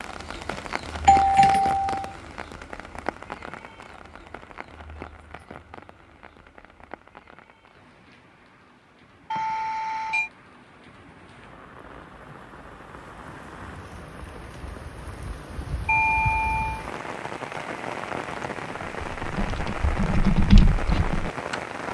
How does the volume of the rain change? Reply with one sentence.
The volume of the rain goes down, then up.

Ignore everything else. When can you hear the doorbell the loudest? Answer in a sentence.
The volume of the doorbell peaks at 1 second.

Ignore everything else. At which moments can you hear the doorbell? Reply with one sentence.
You can hear the doorbell from 0.5 to 1.9 s, from 9.3 to 10.3 s and from 15.8 to 16.9 s.